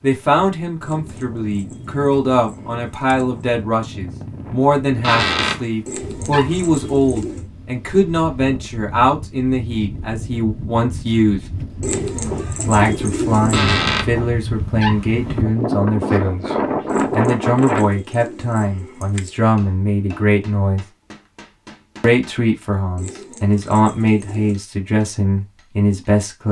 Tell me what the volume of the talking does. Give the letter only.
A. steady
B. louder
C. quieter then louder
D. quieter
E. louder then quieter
A.